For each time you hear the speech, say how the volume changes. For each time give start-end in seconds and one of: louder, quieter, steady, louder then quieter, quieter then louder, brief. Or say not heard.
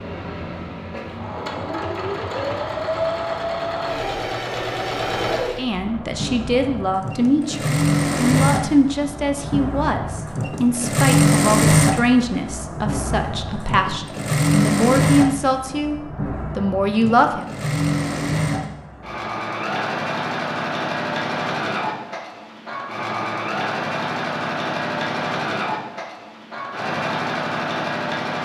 5.5-15.9 steady
16.6-17.5 brief.